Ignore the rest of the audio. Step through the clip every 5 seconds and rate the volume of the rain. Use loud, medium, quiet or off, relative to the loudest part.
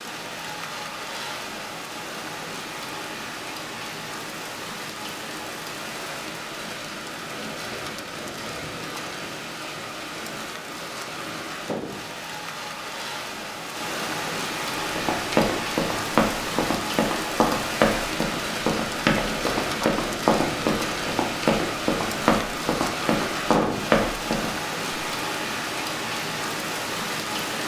medium, medium, loud, loud, loud, loud.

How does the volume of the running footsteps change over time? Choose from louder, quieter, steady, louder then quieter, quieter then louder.
steady.